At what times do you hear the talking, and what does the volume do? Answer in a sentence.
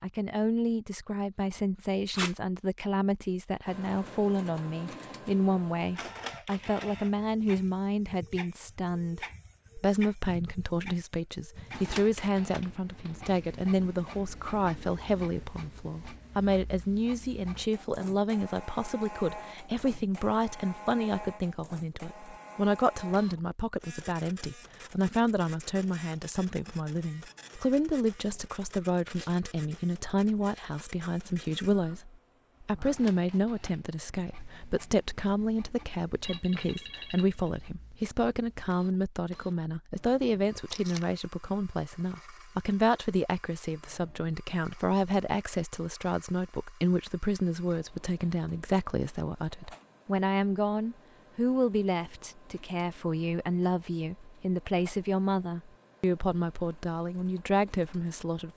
You can hear the talking from 0.0 to 58.5 s, at a steady volume.